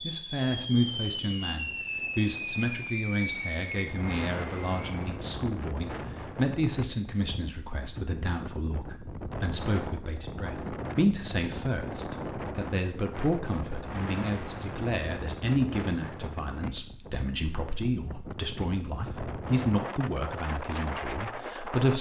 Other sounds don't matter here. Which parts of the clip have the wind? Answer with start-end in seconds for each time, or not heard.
0.0-21.9.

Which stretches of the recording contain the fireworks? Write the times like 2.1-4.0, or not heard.
0.0-5.0.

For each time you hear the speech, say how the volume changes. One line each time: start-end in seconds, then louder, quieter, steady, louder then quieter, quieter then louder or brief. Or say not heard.
0.0-21.9 steady.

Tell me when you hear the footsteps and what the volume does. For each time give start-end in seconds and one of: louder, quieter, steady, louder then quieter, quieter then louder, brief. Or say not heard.
not heard.